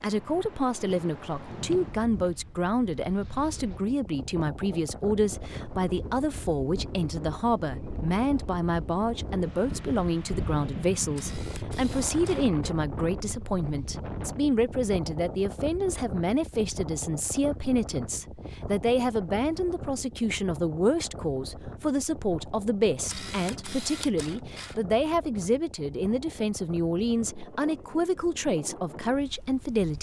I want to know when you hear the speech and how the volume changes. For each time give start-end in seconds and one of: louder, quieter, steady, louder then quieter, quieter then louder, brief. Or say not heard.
0.0-29.9 steady.